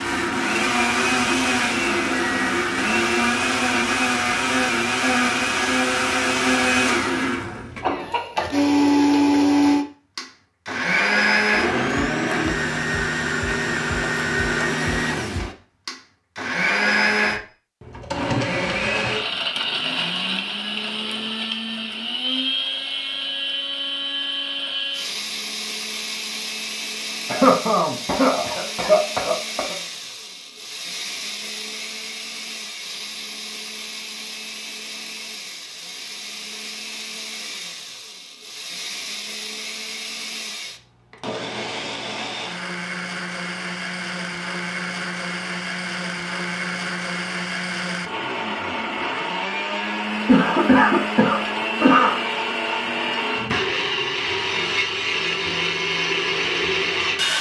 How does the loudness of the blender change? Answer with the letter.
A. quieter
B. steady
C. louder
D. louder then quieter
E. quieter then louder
E.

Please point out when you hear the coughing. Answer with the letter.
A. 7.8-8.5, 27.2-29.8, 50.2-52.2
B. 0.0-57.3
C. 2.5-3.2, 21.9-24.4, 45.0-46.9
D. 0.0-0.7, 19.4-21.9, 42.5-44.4
A.